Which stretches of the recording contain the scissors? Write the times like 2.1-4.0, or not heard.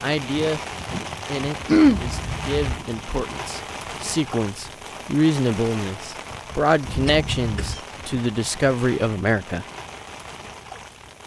1.9-2.8, 6.8-7.8.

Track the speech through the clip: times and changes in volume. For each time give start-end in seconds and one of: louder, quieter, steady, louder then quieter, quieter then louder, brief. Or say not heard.
0.0-0.6 brief
1.2-9.7 louder.